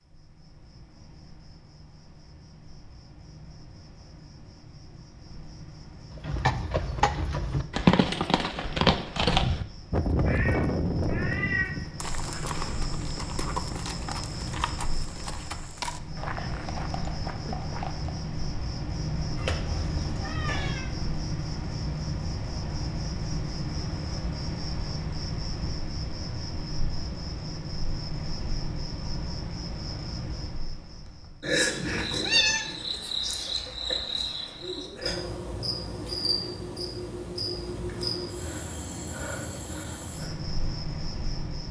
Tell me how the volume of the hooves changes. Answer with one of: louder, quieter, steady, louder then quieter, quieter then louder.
quieter.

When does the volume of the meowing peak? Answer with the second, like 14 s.
32 s.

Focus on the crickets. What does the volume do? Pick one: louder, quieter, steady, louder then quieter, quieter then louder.
louder.